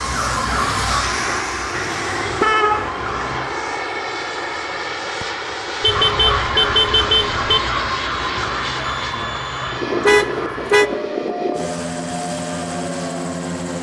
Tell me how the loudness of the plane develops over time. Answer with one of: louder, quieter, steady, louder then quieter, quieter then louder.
steady.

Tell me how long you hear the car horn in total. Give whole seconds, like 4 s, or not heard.
4 s.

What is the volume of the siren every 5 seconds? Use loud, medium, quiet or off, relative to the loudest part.
loud, loud, medium.